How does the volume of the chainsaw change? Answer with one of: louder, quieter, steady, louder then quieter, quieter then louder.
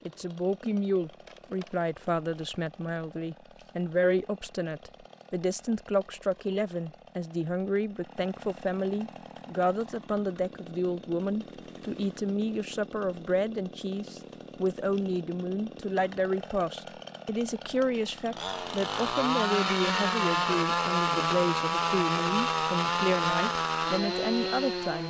louder.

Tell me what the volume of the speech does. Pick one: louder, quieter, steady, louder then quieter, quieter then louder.
steady.